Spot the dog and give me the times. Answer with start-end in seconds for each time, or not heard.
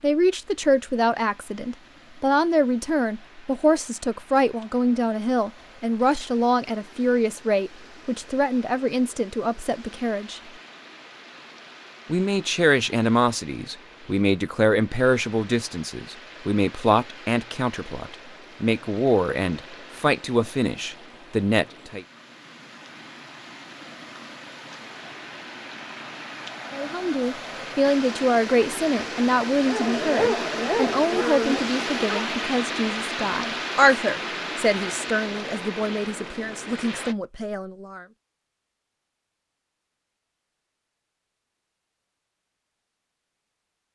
29.6-32.2.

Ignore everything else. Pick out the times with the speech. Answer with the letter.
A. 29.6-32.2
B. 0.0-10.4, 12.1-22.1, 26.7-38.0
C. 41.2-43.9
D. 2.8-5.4
B.